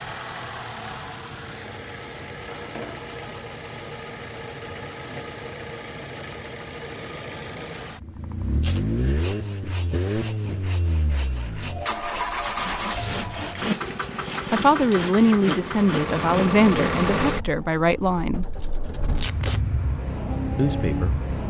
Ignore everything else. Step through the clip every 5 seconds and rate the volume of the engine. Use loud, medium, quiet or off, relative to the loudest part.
medium, loud, loud, loud, loud.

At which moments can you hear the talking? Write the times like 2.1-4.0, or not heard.
14.5-18.4, 20.6-21.2.